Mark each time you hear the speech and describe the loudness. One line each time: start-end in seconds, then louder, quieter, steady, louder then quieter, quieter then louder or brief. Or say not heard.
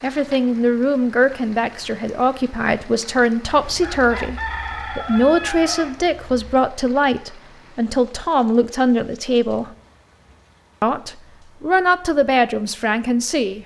0.0-9.7 steady
10.8-13.6 brief.